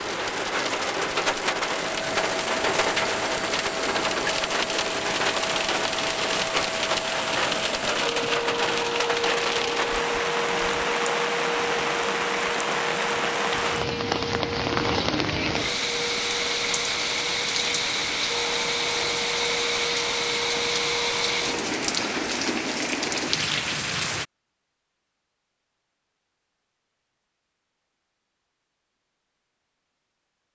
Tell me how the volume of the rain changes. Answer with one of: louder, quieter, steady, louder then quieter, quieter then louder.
steady.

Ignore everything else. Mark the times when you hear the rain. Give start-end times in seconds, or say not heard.
0.0-24.2.